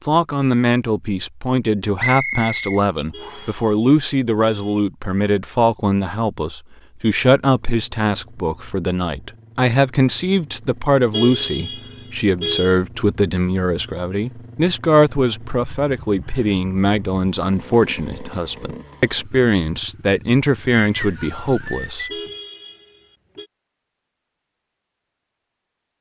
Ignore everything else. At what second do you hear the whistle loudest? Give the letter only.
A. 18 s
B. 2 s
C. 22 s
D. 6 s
B.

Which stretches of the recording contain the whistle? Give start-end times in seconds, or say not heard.
1.9-3.5, 20.7-22.1.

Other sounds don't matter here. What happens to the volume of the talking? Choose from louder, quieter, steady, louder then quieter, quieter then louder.
steady.